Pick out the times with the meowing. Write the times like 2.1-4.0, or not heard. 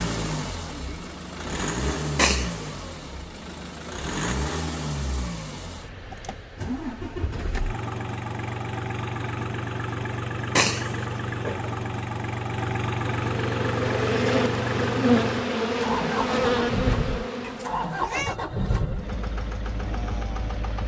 2.1-2.6, 10.6-11.7, 17.4-18.4.